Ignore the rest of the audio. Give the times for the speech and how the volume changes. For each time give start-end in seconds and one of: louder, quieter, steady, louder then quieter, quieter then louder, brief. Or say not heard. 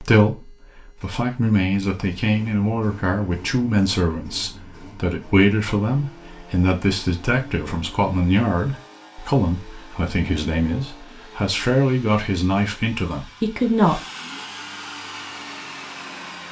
0.0-14.0 steady.